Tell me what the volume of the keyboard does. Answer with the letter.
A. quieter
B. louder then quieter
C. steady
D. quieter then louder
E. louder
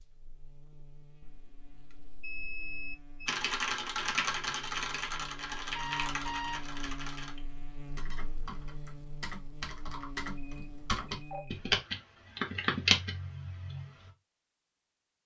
D.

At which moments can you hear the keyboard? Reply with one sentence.
You can hear the keyboard from 3.2 to 14.1 s.